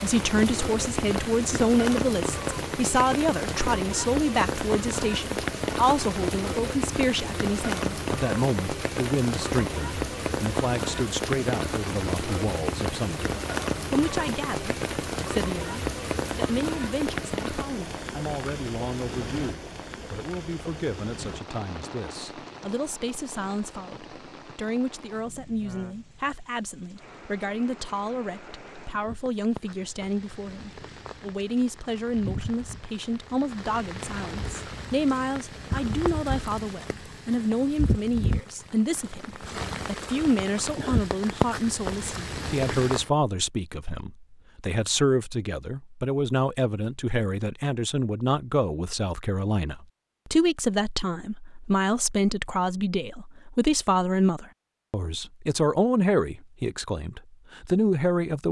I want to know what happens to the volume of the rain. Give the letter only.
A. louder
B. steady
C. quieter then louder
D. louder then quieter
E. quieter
C.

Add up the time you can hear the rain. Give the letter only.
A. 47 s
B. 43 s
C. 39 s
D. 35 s
B.